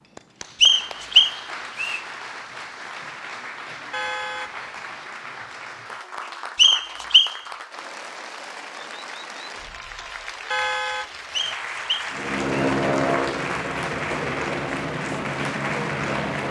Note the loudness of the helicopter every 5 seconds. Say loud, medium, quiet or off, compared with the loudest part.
off, off, loud, loud.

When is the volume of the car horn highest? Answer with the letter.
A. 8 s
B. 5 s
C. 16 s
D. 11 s
D.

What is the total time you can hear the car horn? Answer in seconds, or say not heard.
2 s.